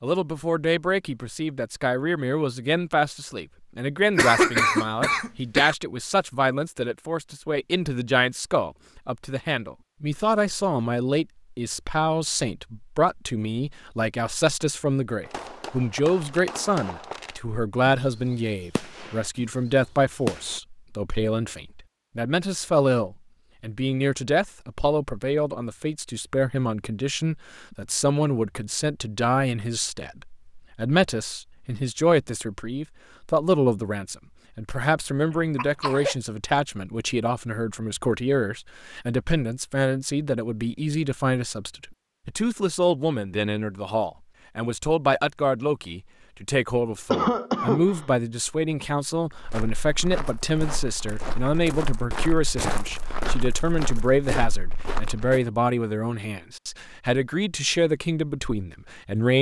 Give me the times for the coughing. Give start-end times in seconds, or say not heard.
4.2-5.8, 35.5-36.1, 47.1-48.0.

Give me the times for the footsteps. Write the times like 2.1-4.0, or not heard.
49.3-55.4.